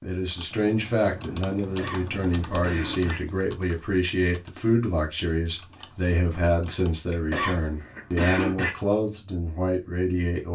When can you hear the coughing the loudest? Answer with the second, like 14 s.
8 s.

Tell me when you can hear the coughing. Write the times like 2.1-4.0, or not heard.
1.6-3.2, 7.1-8.7.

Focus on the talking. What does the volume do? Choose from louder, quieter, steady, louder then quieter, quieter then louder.
steady.